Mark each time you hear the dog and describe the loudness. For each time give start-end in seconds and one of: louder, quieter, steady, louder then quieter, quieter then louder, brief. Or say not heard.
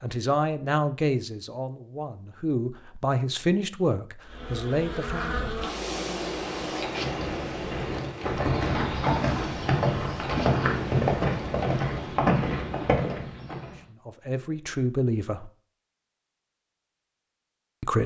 not heard.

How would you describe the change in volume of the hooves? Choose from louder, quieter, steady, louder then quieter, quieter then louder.
louder.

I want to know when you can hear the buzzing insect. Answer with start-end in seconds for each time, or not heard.
4.2-12.2.